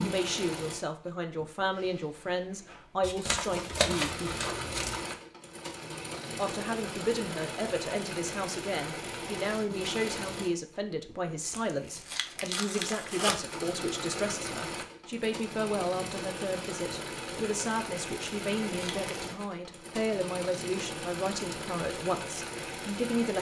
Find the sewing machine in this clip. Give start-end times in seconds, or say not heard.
0.0-23.3.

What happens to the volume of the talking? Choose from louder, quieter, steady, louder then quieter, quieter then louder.
steady.